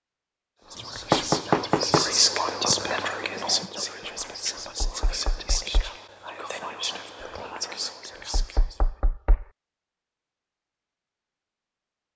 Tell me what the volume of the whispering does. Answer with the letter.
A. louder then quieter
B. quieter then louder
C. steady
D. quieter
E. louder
D.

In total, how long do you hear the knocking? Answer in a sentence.
The knocking can be heard for 3 seconds in total.